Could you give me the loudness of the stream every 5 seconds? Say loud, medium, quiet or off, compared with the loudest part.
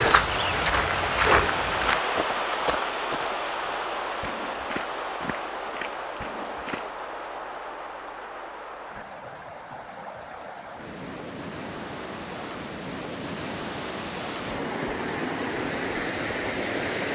loud, medium, medium, loud.